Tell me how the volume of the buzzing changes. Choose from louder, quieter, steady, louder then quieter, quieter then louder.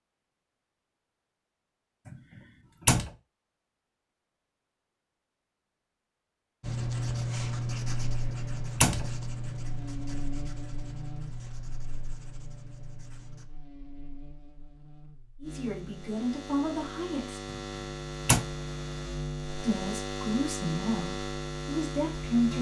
quieter then louder.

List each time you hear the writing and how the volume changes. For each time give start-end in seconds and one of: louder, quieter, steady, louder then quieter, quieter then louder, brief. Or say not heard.
6.6-13.5 quieter.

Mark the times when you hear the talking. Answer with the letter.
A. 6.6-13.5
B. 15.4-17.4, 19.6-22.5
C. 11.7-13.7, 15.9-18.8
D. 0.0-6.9
B.